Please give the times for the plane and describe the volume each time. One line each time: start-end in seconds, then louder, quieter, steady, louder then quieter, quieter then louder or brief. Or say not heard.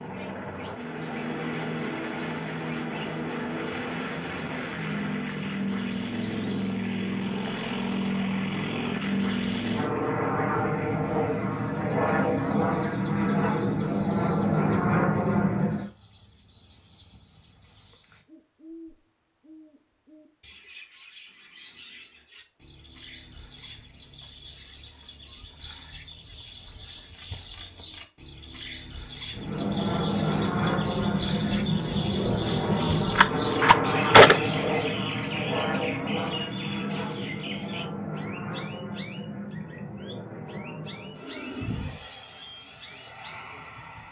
0.0-15.9 louder
29.4-44.0 quieter.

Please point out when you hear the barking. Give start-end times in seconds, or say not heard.
not heard.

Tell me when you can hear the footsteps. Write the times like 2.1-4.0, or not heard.
not heard.